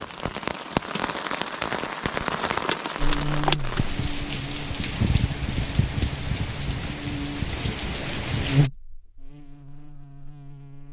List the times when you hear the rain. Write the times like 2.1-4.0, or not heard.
0.0-8.7.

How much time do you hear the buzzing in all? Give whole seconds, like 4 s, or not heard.
8 s.